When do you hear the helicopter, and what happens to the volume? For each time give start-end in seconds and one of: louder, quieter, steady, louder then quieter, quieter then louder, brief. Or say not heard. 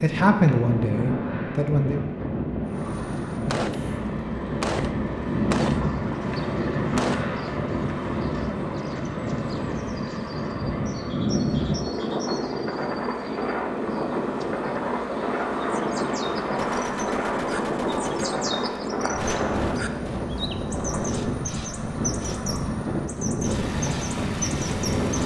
2.6-25.2 steady.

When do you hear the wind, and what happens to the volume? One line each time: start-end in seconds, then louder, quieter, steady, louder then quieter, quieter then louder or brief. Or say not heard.
0.0-25.2 steady.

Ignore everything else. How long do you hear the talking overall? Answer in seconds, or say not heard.
2 s.